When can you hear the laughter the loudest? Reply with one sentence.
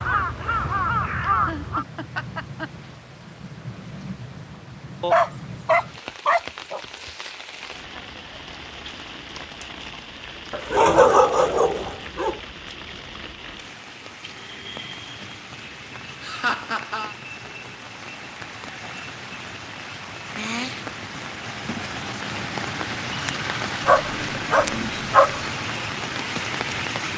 The volume of the laughter peaks at 17 seconds.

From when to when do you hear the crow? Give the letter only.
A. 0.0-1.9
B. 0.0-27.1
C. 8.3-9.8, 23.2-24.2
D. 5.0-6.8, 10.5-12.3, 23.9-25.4
A.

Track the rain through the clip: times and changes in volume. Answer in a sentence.
The rain can be heard from 0.0 to 27.1 s, getting louder.